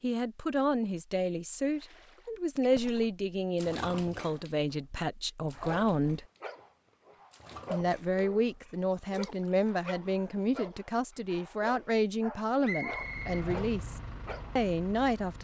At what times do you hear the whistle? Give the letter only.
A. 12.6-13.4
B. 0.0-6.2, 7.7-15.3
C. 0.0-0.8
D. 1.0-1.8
A.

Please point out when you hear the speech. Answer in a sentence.
You can hear the speech from 0.0 to 6.2 s and from 7.7 to 15.3 s.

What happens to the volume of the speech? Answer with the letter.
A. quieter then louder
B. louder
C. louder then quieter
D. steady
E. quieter
D.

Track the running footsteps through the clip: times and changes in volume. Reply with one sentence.
The running footsteps can't be heard in this clip.